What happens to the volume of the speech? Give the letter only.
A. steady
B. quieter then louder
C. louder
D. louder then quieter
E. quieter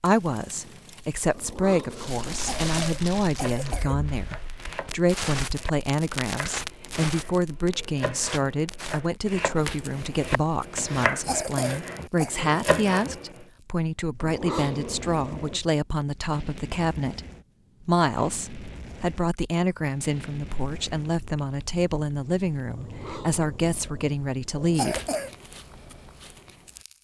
A.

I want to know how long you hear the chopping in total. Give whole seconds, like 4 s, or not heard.
10 s.